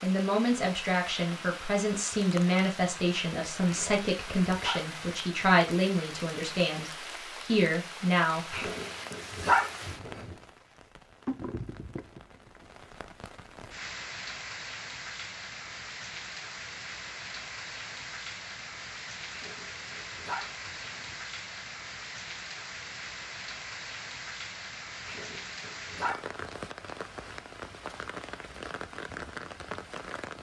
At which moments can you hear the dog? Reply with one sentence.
You can hear the dog from 3.6 to 5.1 s, from 8.5 to 10.3 s, from 19.3 to 21.1 s and from 25.1 to 26.4 s.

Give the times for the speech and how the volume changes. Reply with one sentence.
The speech can be heard from 0.0 to 8.7 s, at a steady volume.